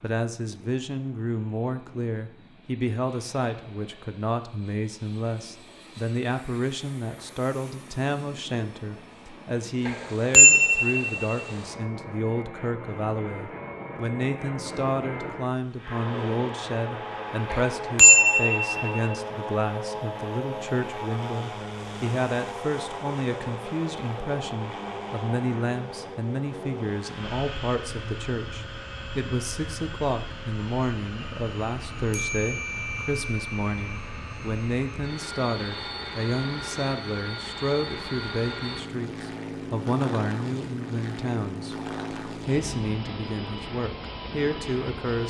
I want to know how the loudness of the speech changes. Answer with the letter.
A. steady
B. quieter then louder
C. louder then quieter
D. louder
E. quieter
A.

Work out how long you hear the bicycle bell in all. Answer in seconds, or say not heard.
5 s.